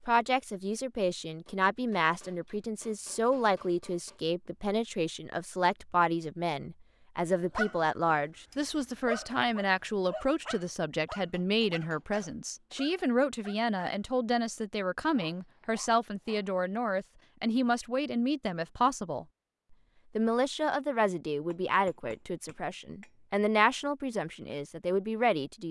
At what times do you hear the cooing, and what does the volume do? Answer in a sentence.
The cooing can't be heard in this clip.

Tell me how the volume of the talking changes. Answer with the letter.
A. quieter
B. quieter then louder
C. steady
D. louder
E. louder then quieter
C.